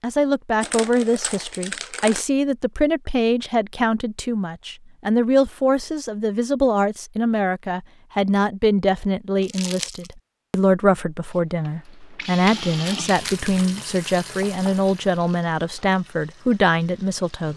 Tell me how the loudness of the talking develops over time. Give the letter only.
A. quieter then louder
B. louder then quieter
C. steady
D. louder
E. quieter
C.